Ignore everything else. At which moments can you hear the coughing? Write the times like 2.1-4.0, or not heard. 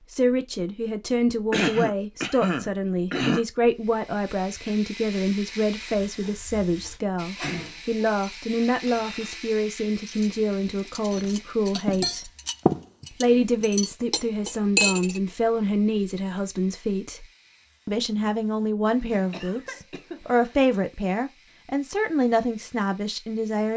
1.5-3.5, 19.3-20.6.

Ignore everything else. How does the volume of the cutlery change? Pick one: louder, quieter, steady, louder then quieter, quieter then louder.
louder.